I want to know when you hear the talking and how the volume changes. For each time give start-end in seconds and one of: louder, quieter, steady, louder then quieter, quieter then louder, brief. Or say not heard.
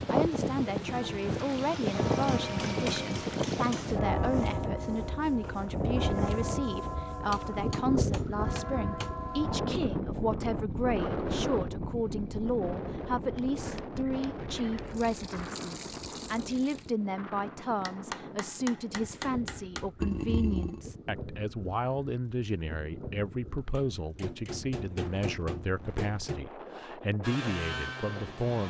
0.1-28.6 steady.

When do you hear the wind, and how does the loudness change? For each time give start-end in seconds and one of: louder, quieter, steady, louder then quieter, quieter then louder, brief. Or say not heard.
0.0-28.6 quieter.